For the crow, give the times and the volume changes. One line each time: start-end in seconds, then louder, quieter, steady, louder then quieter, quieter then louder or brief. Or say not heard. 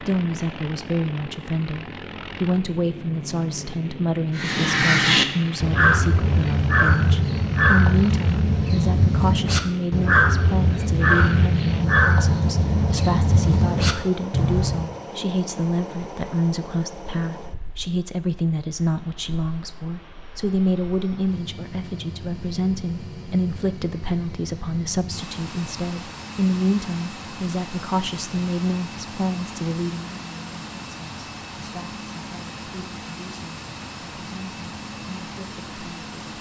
4.3-14.9 steady.